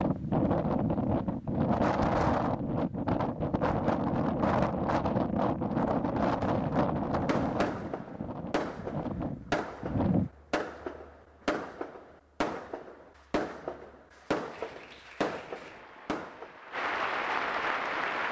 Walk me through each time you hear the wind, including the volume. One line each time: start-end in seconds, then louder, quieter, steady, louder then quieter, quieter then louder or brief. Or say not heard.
0.0-10.3 quieter.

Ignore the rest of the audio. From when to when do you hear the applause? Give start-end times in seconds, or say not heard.
14.5-18.2.